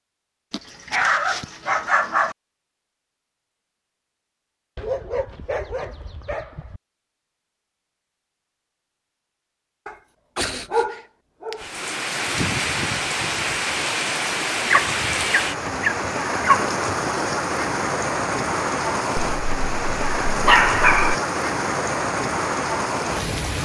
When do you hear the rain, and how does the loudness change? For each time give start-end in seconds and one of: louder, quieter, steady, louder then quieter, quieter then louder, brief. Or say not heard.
11.6-23.6 steady.